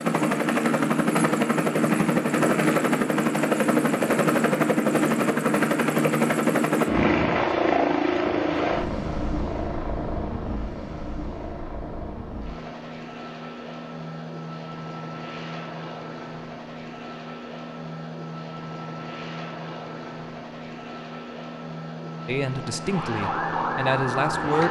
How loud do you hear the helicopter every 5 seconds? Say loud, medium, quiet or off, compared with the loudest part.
loud, loud, quiet, quiet, quiet.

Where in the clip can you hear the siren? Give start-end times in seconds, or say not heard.
22.9-24.6.